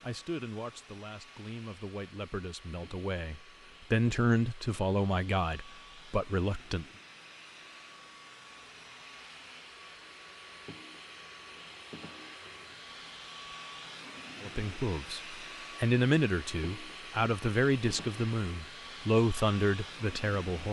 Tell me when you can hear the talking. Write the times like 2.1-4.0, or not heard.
0.0-6.8, 14.4-20.6.